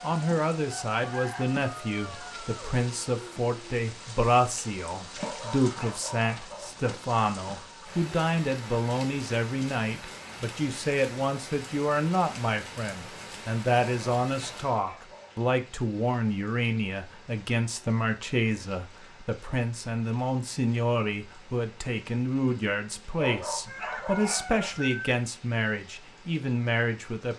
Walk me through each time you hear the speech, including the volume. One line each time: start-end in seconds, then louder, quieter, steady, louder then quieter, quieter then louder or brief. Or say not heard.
0.0-27.3 steady.